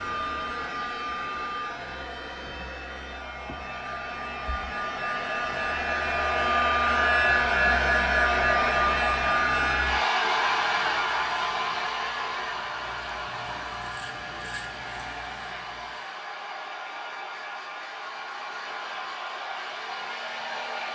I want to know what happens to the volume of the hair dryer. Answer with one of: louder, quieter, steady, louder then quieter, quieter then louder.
louder then quieter.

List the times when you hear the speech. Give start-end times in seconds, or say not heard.
not heard.